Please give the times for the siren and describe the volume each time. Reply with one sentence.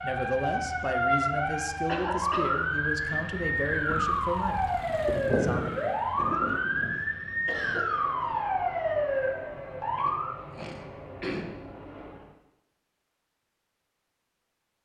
You can hear the siren from 0.0 to 10.3 s, at a steady volume.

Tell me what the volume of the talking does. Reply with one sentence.
The loudness of the talking stays about the same.